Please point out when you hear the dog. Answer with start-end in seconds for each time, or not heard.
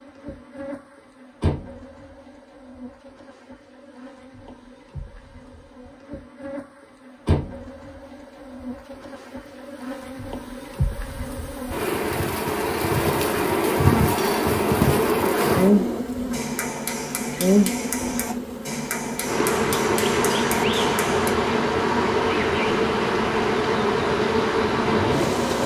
not heard.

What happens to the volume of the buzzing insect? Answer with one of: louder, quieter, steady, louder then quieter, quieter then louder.
louder.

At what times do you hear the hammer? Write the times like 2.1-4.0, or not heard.
13.0-21.4.